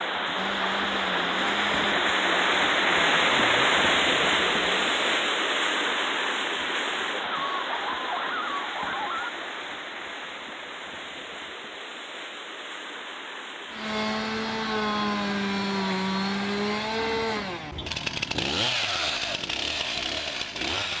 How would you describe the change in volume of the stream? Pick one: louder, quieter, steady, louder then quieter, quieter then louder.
quieter.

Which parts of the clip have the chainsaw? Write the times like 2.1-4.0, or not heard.
0.2-5.2, 13.7-20.9.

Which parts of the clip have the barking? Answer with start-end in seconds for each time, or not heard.
7.3-9.3.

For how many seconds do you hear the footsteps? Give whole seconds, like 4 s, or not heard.
not heard.